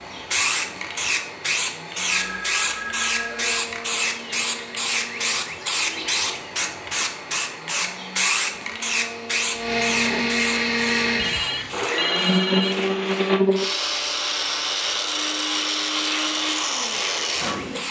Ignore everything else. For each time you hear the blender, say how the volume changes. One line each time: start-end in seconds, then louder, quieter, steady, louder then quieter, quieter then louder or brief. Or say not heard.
0.0-17.8 louder.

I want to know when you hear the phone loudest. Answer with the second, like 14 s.
12 s.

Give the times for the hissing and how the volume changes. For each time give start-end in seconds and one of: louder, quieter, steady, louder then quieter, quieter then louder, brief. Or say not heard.
0.0-17.8 quieter.